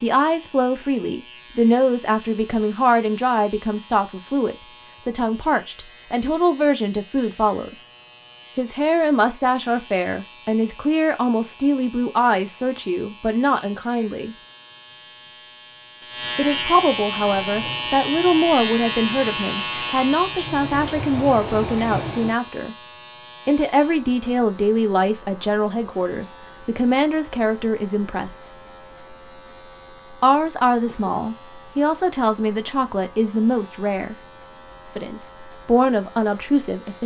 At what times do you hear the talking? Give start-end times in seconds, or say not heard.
0.0-7.8, 8.6-14.3, 16.4-22.8, 23.4-28.5, 30.2-34.1, 35.0-37.0.